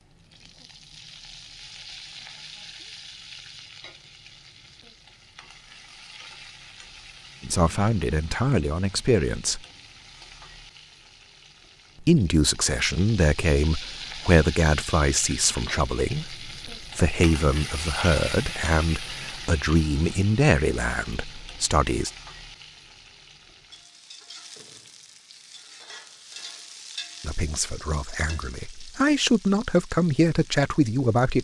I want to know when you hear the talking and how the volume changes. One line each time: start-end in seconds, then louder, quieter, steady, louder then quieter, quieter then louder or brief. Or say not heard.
7.4-9.6 brief
12.0-22.1 steady
27.2-31.3 quieter then louder.